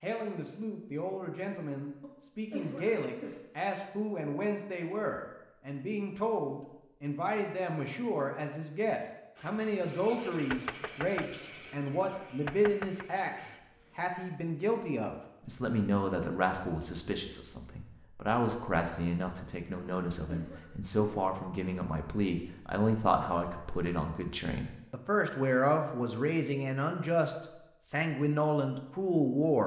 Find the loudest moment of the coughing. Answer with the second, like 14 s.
3 s.